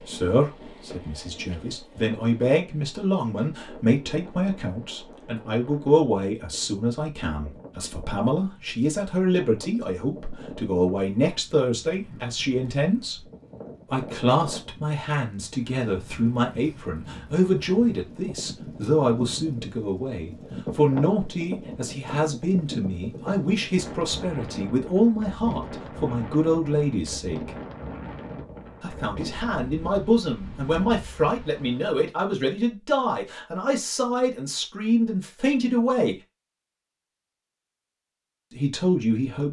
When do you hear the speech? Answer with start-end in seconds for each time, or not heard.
0.0-13.2, 13.9-27.5, 28.8-36.1, 38.5-39.4.